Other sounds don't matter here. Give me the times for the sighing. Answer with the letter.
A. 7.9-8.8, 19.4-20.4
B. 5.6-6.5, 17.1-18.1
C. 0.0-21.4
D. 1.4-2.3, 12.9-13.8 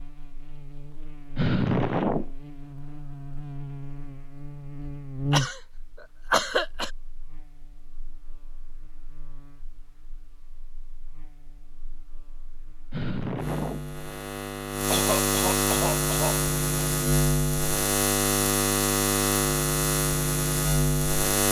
D.